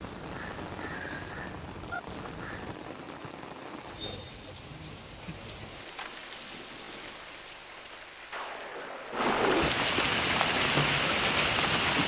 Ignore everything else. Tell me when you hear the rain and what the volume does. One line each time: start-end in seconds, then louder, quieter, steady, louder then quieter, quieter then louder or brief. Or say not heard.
0.0-12.0 louder.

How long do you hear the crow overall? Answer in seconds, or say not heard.
3 s.